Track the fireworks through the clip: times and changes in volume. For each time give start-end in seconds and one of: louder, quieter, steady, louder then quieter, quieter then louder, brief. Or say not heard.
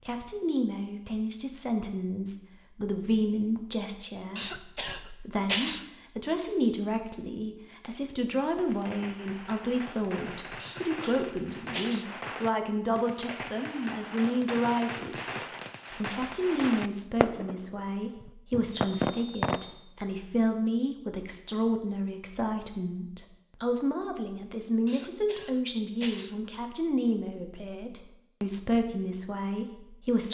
8.6-19.6 louder.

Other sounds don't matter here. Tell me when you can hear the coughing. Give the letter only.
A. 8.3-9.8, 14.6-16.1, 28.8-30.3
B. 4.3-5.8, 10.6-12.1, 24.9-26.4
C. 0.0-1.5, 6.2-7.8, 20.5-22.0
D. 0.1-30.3
B.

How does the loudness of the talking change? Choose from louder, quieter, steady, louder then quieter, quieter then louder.
steady.